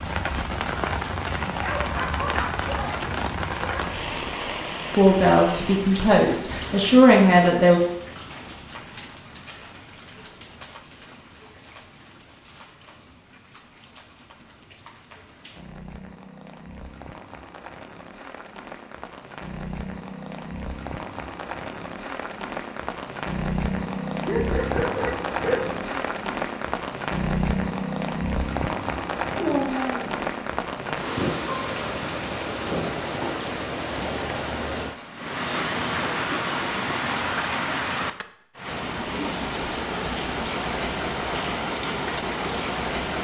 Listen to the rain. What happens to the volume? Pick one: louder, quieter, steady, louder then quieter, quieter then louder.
quieter then louder.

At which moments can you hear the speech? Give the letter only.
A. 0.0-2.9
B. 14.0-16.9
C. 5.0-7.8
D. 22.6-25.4
C.